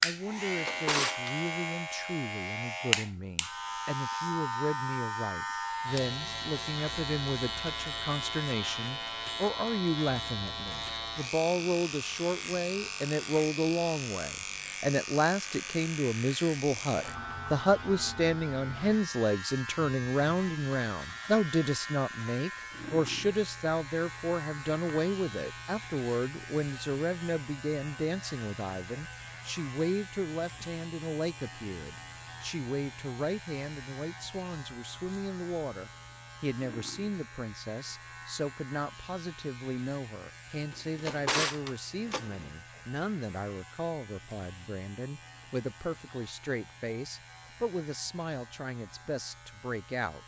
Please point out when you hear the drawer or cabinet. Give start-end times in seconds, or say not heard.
0.3-1.4, 40.7-42.5.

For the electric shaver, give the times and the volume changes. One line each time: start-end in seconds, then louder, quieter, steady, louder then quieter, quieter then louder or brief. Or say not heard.
0.0-50.2 quieter.